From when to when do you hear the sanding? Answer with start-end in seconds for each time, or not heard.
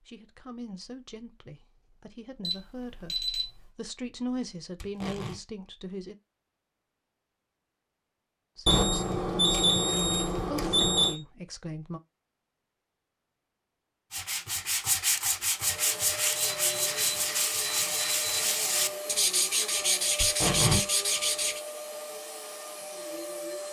14.1-21.6.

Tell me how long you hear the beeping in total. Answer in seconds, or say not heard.
6 s.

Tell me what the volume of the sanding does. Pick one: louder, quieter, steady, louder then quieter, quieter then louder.
steady.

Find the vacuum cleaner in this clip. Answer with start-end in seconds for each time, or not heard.
15.6-23.6.